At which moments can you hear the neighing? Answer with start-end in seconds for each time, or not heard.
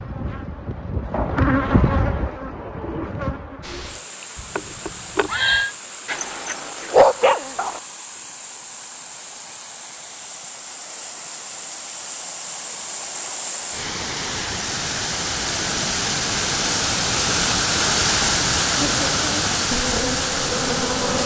4.3-5.8.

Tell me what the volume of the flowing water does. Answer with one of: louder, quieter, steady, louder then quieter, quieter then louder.
louder.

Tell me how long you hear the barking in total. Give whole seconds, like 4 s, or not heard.
2 s.